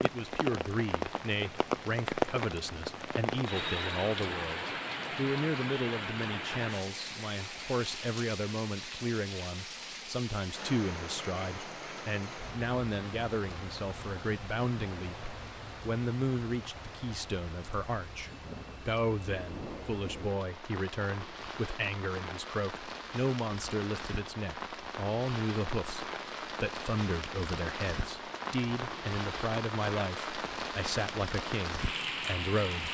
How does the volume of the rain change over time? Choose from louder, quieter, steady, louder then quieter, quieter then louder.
quieter then louder.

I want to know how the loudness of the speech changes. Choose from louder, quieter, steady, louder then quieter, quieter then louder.
steady.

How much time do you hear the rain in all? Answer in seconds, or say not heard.
33 s.